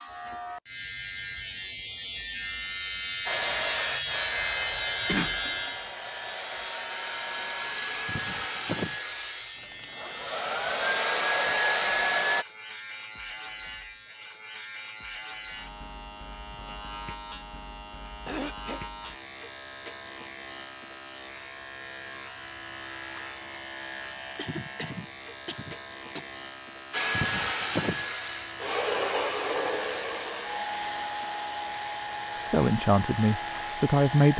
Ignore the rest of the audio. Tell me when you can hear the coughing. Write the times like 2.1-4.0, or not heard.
5.0-5.7, 18.2-18.8, 24.4-26.3.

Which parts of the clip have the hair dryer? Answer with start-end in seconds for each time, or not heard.
3.2-12.4, 26.9-34.3.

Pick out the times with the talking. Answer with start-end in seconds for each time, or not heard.
32.4-34.3.